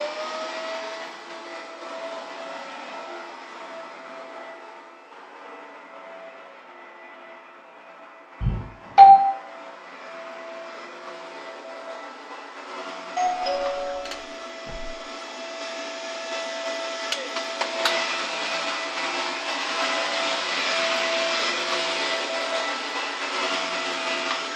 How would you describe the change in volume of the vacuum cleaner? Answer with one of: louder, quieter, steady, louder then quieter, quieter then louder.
quieter then louder.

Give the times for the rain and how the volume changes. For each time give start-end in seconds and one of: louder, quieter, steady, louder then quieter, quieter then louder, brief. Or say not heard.
not heard.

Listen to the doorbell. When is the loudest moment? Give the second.
9 s.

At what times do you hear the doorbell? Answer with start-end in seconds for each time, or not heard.
8.4-9.2, 13.2-14.9.